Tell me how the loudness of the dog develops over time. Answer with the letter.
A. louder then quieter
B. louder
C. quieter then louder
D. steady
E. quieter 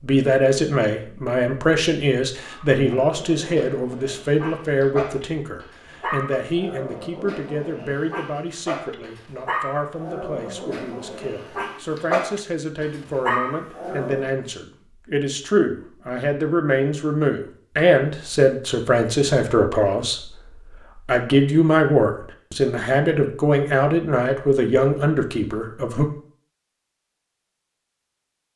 B.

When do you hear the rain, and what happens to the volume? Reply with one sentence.
You can't hear the rain here.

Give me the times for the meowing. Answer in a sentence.
The meowing can't be heard in this clip.